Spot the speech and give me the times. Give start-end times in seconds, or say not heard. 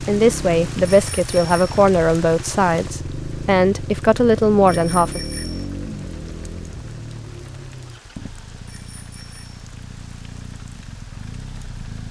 0.0-5.2.